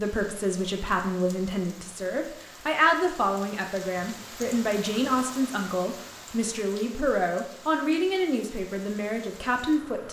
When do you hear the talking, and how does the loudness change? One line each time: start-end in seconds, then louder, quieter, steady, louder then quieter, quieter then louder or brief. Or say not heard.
0.0-10.0 steady.